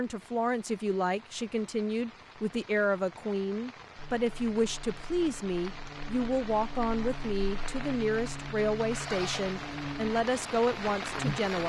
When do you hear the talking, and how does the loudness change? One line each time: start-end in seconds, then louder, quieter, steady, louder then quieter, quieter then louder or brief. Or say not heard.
0.0-11.6 steady.